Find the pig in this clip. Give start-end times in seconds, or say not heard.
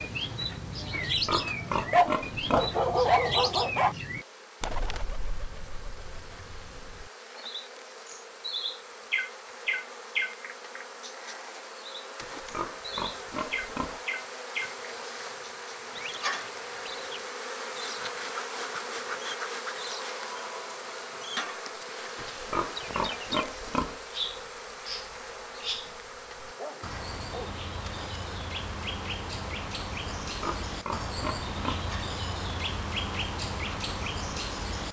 0.9-2.8, 12.2-14.0, 22.1-24.0, 30.2-31.9.